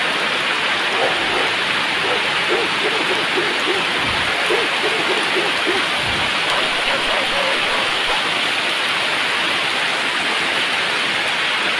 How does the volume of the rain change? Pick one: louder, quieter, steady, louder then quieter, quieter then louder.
steady.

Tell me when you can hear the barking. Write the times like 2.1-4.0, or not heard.
0.9-8.2.